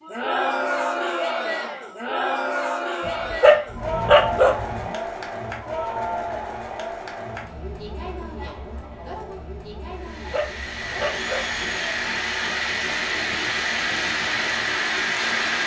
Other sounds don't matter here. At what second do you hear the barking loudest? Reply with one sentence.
The volume of the barking peaks at 4 seconds.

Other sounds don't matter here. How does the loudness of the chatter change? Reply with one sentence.
The volume of the chatter goes down.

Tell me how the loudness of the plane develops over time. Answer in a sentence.
The volume of the plane goes up.